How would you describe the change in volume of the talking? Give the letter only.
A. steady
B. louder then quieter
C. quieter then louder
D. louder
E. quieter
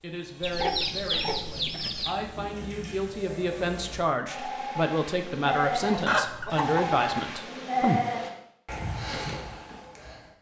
D.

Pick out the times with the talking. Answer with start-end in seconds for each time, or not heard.
0.0-8.0.